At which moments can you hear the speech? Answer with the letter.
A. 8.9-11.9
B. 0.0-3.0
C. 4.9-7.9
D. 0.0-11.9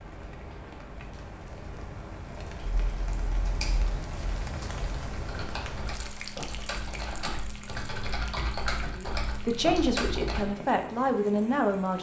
A.